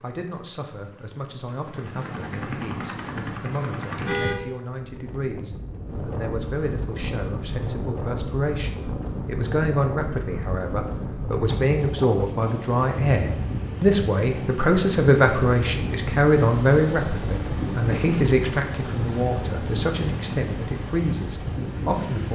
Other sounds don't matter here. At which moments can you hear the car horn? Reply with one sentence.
You can hear the car horn from 4.0 to 4.5 s.